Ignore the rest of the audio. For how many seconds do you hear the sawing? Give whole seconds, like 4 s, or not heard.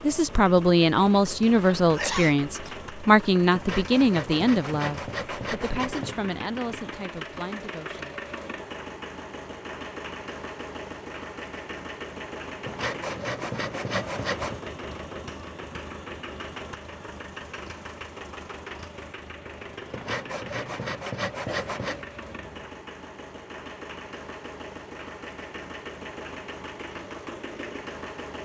7 s.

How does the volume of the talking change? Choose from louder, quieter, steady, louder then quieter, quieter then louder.
quieter.